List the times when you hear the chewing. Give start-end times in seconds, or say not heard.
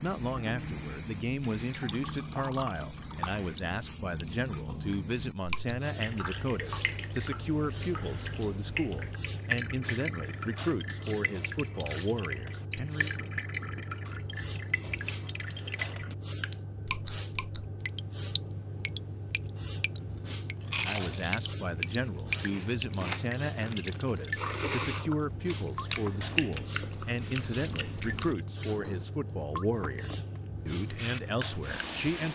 20.2-29.1.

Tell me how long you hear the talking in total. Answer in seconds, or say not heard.
25 s.